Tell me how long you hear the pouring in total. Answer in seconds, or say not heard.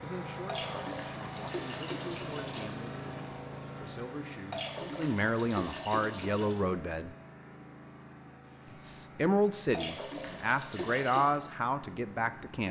6 s.